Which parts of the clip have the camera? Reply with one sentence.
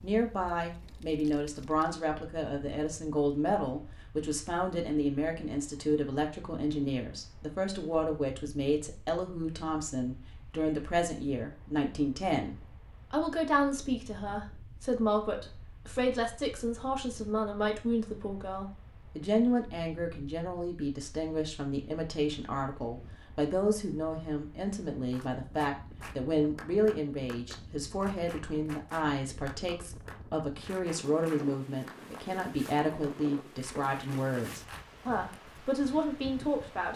The camera can't be heard in this clip.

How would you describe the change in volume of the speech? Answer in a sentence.
The loudness of the speech stays about the same.